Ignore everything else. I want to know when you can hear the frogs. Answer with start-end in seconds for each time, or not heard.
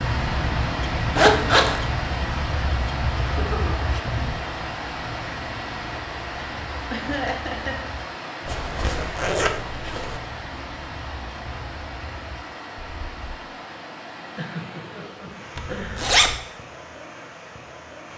not heard.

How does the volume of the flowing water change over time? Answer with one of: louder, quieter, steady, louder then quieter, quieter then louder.
quieter.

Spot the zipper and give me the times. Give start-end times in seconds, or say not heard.
1.1-1.8, 8.4-10.2, 15.6-16.4.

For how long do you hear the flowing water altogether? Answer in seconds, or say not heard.
18 s.